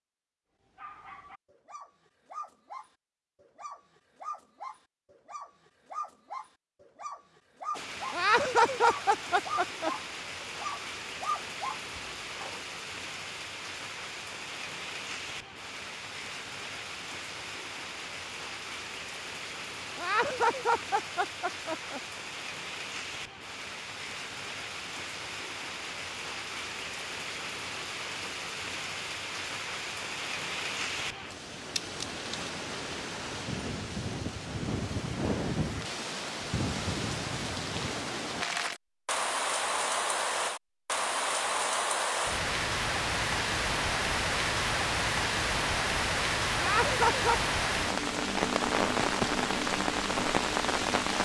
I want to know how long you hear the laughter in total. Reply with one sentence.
You can hear the laughter for 5 seconds altogether.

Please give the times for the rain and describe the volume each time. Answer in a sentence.
The rain can be heard from 7.7 to 51.2 s, getting louder.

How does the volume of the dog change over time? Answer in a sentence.
The volume of the dog goes up.